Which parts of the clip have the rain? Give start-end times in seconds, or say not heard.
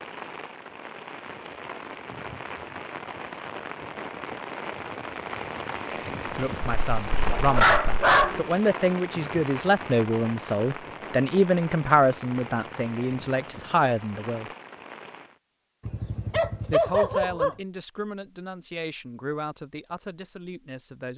0.0-15.4.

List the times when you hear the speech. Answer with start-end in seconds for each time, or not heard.
6.3-14.5, 16.7-21.1.